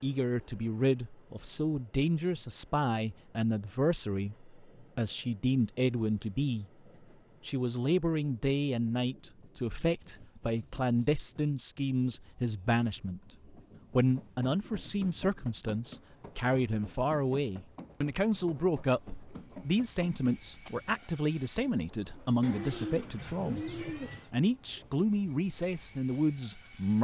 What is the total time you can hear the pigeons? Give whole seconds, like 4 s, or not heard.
2 s.